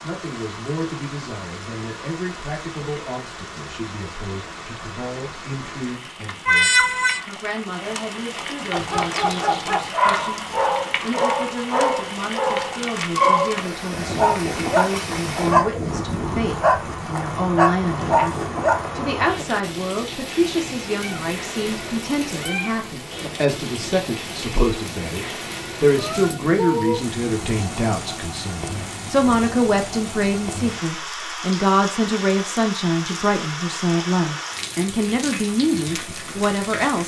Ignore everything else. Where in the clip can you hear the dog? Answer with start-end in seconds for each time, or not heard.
8.7-18.9.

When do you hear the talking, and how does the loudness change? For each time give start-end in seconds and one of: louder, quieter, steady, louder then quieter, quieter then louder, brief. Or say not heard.
0.0-37.0 louder.